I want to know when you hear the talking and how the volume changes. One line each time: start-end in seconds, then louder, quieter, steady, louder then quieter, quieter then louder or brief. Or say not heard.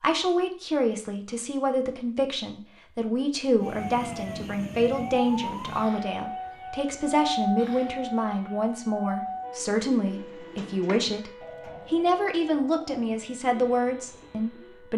0.0-14.9 steady.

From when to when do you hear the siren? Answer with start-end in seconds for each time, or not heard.
3.5-14.9.